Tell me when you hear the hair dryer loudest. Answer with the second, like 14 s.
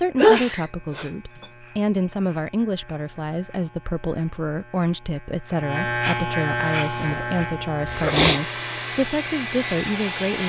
10 s.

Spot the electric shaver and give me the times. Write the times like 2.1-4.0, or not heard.
0.0-10.4.